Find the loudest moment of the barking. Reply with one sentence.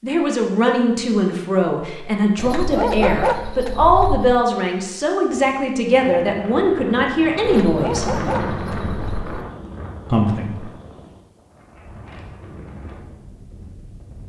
The volume of the barking peaks at 3 seconds.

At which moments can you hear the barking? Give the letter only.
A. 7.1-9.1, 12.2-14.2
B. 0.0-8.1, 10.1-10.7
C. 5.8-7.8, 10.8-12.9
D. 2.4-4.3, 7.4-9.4
D.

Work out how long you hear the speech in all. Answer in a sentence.
You can hear the speech for 9 seconds altogether.